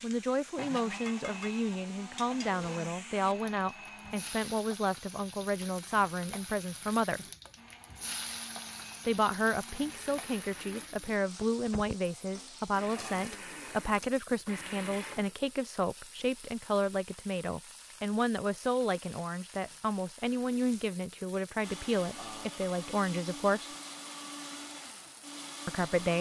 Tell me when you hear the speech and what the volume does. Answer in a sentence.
You can hear the speech from 0.0 to 7.2 s, at a steady volume; from 9.1 to 23.7 s, at a steady volume; and briefly from 25.6 to 26.1 s.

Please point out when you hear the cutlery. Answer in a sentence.
The cutlery can't be heard in this clip.